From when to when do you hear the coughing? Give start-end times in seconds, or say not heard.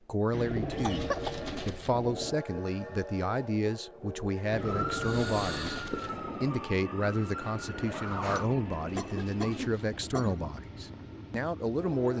0.7-1.4, 5.0-6.2, 8.9-10.5.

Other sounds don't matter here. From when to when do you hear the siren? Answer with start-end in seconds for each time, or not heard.
4.6-8.5.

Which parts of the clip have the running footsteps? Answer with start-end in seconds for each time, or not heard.
not heard.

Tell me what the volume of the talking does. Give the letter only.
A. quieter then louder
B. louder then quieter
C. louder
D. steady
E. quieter
D.